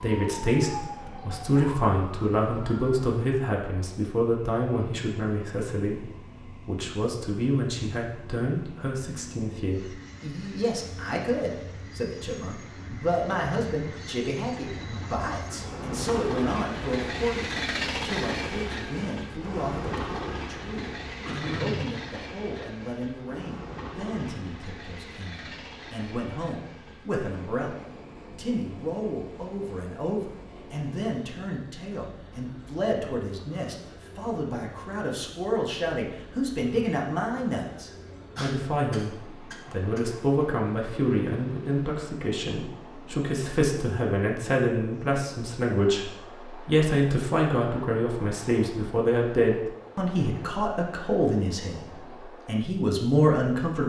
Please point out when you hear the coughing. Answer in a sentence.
The coughing can be heard from 21.2 to 21.9 s and from 38.4 to 40.0 s.